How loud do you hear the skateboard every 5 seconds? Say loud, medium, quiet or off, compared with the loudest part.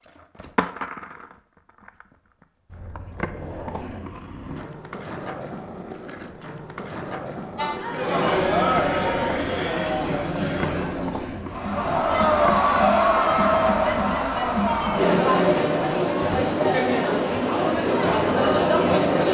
loud, loud, loud, off.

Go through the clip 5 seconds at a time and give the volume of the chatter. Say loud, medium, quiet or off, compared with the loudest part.
off, loud, loud, loud.